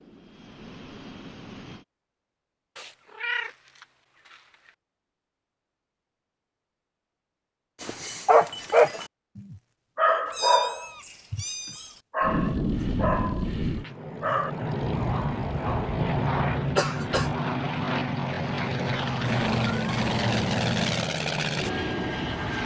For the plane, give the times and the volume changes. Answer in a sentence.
The plane can be heard briefly from 0.0 to 1.9 s; and from 12.2 to 22.6 s, at a steady volume.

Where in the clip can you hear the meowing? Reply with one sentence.
You can hear the meowing from 2.8 to 4.7 s, from 10.2 to 12.0 s and from 19.2 to 21.1 s.